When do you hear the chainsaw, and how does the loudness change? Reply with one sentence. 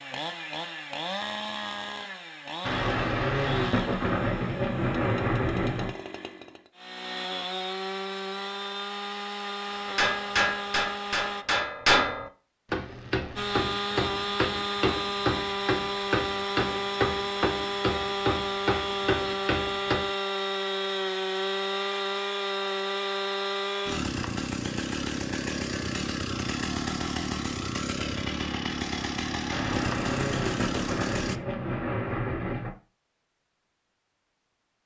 You can hear the chainsaw from 0.0 to 11.4 s, getting quieter then louder; and from 13.3 to 31.4 s, at a steady volume.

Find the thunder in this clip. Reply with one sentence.
You can hear the thunder from 2.6 to 6.0 s and from 29.5 to 32.7 s.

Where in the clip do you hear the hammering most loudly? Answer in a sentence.
The volume of the hammering peaks at 12 seconds.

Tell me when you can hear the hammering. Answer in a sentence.
You can hear the hammering from 9.8 to 20.1 s.